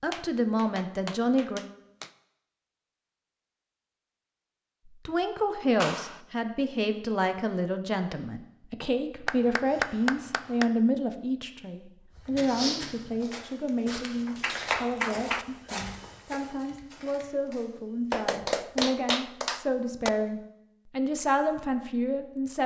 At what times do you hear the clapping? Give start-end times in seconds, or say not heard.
0.1-2.1, 5.8-6.2, 9.2-10.7, 14.2-15.4, 18.1-20.1.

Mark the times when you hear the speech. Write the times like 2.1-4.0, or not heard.
0.0-1.6, 5.0-22.6.